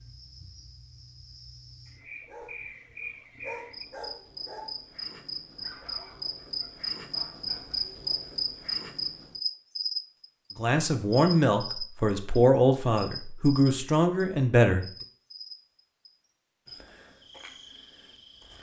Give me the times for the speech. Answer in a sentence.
The speech can be heard from 10.6 to 14.8 s.